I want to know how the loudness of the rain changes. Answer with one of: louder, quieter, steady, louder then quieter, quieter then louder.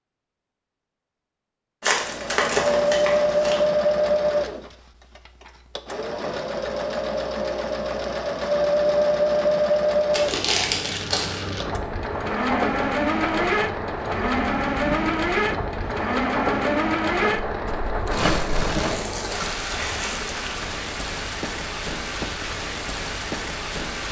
steady.